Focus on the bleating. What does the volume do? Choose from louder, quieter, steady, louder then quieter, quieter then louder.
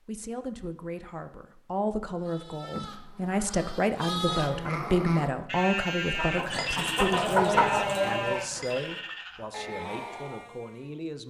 louder then quieter.